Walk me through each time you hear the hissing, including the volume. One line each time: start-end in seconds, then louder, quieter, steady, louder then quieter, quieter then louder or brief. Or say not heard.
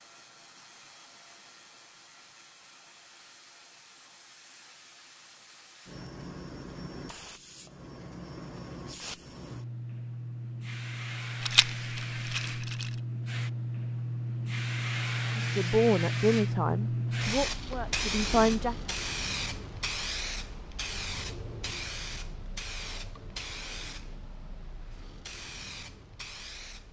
0.0-26.8 louder then quieter.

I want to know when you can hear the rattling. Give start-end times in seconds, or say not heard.
11.4-12.9.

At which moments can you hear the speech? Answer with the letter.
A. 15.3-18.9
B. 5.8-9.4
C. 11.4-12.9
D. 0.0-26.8
A.